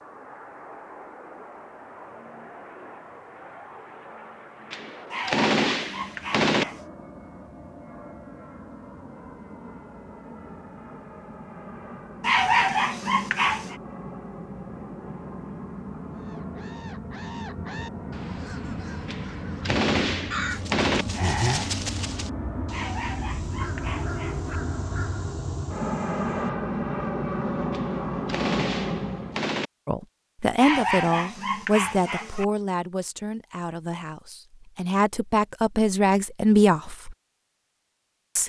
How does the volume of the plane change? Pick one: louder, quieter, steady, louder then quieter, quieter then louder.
louder.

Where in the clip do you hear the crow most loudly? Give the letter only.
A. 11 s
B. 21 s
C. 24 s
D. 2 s
B.